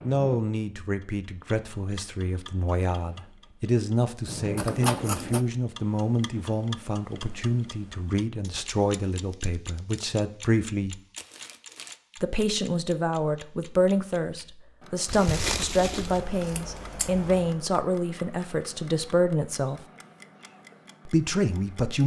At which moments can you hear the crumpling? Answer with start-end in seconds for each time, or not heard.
4.6-5.0, 11.2-11.9, 15.1-16.2.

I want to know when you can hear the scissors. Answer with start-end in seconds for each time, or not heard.
4.5-5.5, 9.1-10.0, 16.1-17.6.